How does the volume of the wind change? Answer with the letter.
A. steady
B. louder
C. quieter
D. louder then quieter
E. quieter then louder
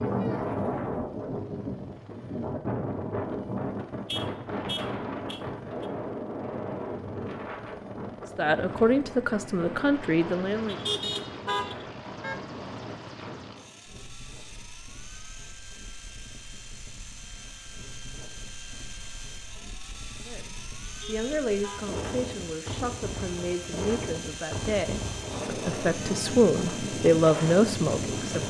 E.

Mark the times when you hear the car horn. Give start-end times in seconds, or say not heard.
3.3-5.8, 10.7-12.4, 20.9-21.9.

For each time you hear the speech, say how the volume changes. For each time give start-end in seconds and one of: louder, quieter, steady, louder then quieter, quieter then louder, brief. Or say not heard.
8.3-10.8 brief
20.2-28.4 louder.